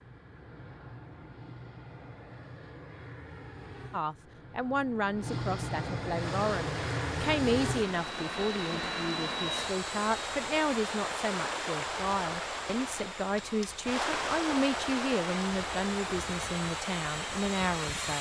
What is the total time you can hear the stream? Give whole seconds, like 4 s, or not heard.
12 s.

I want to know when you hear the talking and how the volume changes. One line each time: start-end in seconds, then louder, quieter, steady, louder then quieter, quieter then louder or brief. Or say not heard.
3.9-18.1 steady.